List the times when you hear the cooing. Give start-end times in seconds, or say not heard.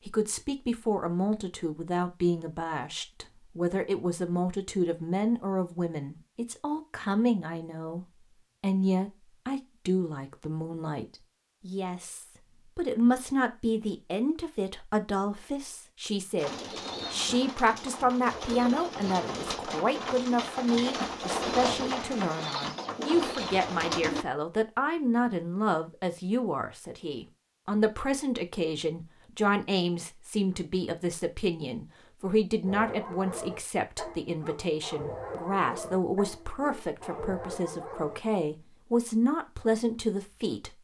16.4-24.2.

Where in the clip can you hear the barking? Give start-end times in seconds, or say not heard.
32.6-38.4.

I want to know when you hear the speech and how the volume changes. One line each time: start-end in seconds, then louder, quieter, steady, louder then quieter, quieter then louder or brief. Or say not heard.
0.1-40.8 steady.